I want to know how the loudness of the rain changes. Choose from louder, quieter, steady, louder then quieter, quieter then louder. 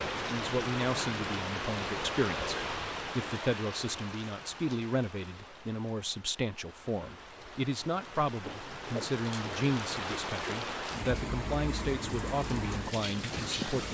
quieter then louder.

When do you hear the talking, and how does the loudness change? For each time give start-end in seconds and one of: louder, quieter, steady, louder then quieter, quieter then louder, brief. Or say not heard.
0.2-13.8 steady.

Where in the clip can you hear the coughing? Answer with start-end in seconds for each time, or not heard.
not heard.